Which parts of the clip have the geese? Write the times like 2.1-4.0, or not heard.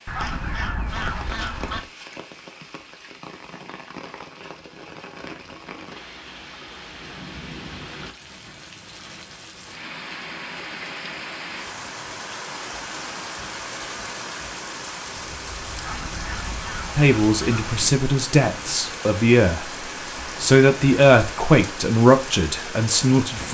0.1-1.9, 15.8-17.8.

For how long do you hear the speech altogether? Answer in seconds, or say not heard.
6 s.